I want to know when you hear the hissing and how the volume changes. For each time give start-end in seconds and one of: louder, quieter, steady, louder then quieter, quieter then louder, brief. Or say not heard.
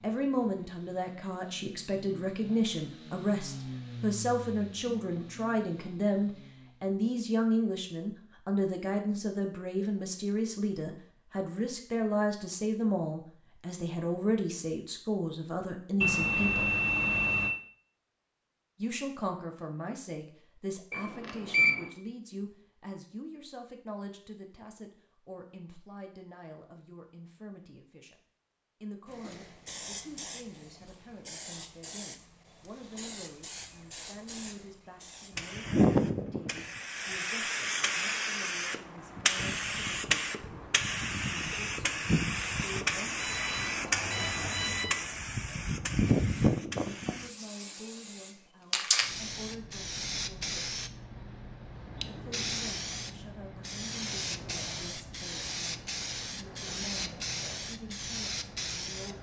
29.2-59.1 louder then quieter.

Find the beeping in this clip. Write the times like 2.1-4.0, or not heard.
16.0-17.6, 20.9-21.9, 43.1-45.0.